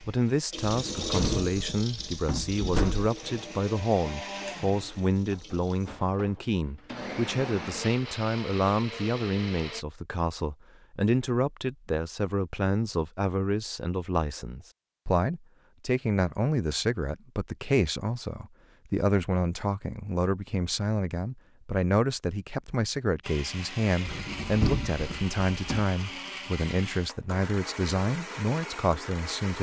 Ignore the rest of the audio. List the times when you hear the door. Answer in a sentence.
You can hear the door from 0.7 to 3.1 s and from 24.1 to 25.9 s.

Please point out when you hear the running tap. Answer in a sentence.
The running tap can be heard from 0.0 to 6.0 s.